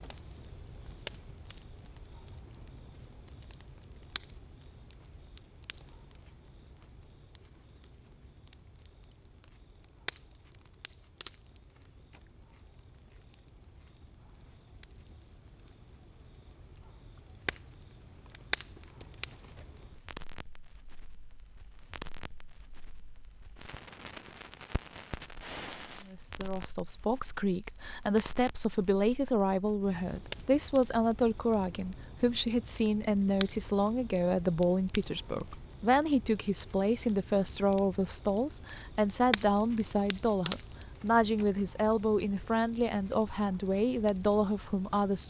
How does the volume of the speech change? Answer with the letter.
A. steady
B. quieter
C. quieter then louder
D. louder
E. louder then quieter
A.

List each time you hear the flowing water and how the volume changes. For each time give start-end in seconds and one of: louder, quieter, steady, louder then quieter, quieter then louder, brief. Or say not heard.
not heard.